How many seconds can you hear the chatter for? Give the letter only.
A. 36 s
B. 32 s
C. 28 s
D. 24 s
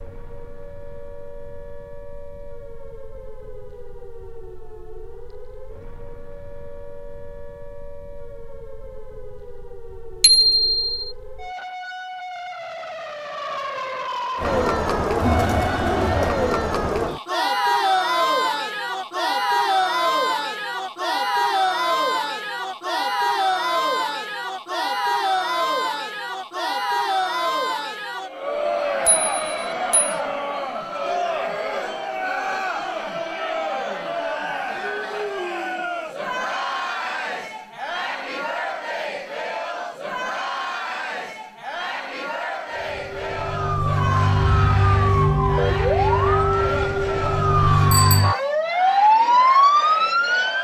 A.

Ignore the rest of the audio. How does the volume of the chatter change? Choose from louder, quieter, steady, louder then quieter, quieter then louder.
quieter.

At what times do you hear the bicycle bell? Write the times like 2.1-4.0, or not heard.
10.2-11.1, 29.1-30.1, 47.9-48.4.